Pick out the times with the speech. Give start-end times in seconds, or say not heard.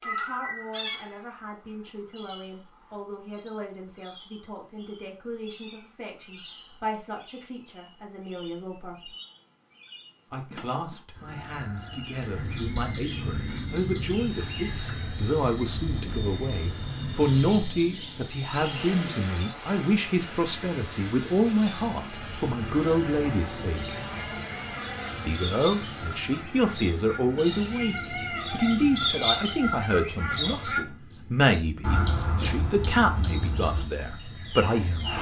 0.1-9.2, 10.3-23.9, 25.2-35.1.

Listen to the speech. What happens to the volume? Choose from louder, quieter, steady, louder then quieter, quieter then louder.
louder.